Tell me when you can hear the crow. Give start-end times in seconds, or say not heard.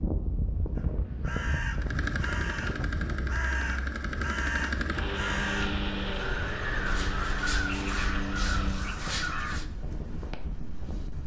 0.8-9.7.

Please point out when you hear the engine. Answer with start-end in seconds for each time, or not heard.
1.8-9.0.